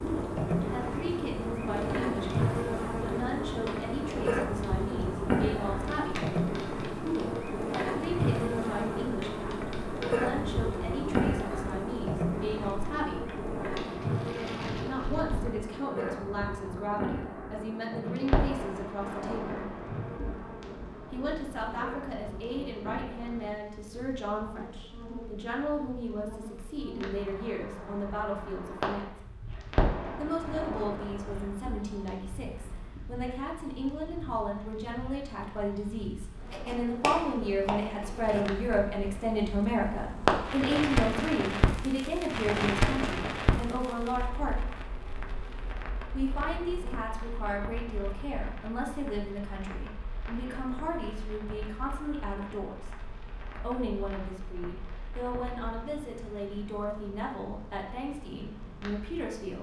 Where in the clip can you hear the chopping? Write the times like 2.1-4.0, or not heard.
36.5-38.8.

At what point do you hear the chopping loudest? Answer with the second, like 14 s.
37 s.